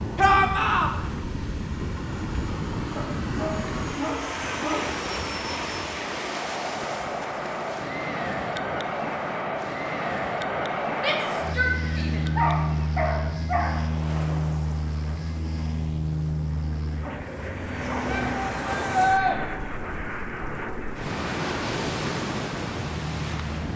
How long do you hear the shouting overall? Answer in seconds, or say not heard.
3 s.